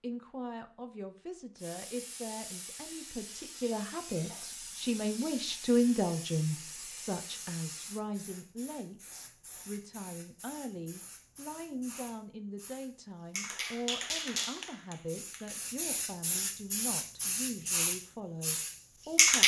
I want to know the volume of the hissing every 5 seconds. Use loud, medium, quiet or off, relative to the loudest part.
quiet, quiet, medium, loud.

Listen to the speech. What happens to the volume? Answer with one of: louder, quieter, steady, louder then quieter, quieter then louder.
louder then quieter.